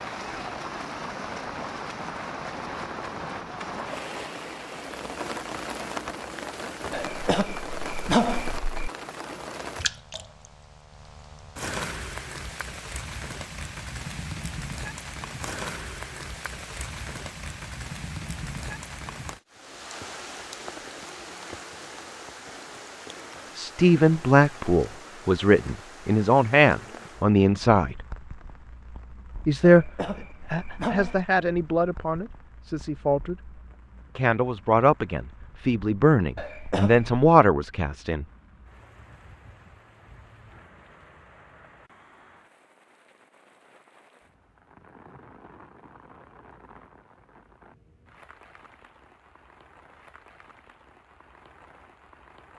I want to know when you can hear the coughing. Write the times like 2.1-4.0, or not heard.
6.9-8.9, 29.6-31.3, 36.4-37.1.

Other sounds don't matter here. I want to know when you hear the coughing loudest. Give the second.
8 s.